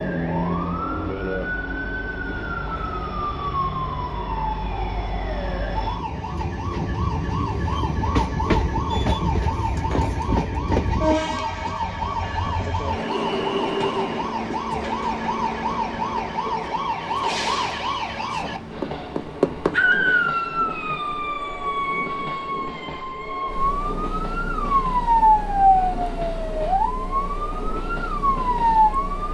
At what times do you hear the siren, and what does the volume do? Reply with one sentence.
You can hear the siren from 0.0 to 29.2 s, getting louder.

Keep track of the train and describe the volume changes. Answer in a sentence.
The loudness of the train goes up, then down.